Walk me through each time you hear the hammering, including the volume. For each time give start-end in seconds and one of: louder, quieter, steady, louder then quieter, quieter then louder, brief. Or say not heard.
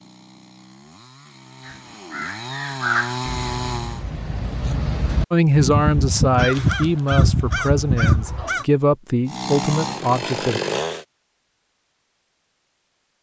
not heard.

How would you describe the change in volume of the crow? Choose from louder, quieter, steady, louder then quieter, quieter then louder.
quieter then louder.